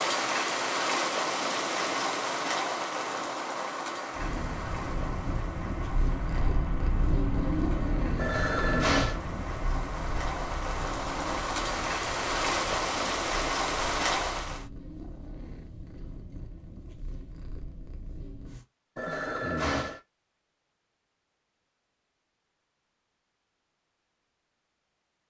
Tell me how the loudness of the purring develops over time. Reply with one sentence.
The volume of the purring goes down.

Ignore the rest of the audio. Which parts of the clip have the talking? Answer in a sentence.
You can't hear the talking here.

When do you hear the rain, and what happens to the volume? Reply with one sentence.
You can hear the rain from 0.0 to 14.7 s, getting quieter then louder.